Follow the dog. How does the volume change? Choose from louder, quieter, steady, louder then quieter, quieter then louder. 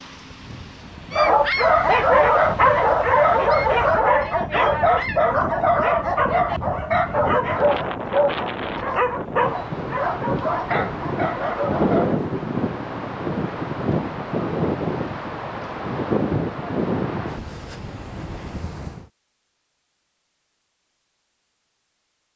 quieter.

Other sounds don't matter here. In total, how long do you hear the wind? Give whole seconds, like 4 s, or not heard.
19 s.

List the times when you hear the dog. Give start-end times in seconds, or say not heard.
1.1-12.2.